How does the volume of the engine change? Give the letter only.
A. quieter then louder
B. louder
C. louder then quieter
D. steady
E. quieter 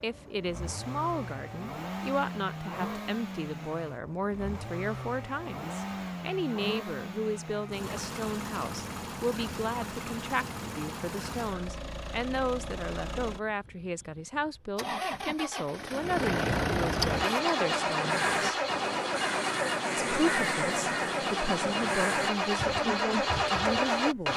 B.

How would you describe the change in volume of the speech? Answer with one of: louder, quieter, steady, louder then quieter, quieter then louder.
steady.